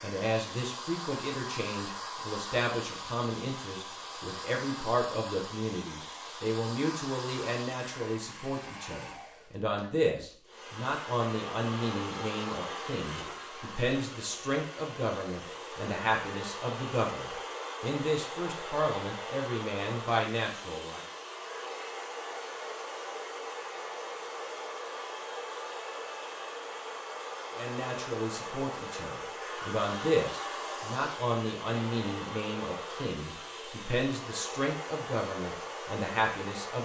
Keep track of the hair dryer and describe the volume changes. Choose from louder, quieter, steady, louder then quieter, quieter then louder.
steady.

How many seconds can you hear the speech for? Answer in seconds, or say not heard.
30 s.